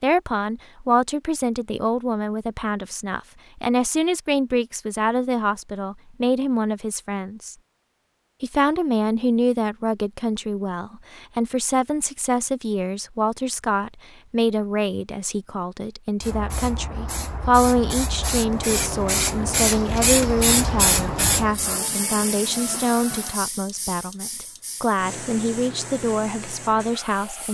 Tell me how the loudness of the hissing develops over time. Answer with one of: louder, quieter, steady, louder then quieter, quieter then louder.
louder then quieter.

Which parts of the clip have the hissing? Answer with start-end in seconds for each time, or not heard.
16.2-27.5.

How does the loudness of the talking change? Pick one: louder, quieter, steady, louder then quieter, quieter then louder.
steady.